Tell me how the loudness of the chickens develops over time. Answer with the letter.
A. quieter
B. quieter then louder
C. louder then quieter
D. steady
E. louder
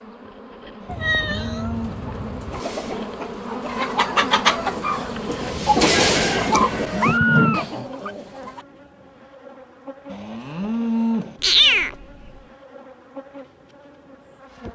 C.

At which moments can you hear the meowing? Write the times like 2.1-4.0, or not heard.
0.8-2.6, 6.5-8.1, 11.4-12.3.